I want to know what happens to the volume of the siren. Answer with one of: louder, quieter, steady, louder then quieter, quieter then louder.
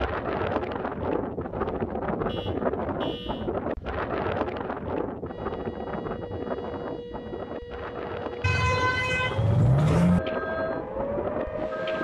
louder.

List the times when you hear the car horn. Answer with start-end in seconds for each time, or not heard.
2.2-3.5, 8.4-10.2.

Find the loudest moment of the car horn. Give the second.
10 s.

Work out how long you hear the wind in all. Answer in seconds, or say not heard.
12 s.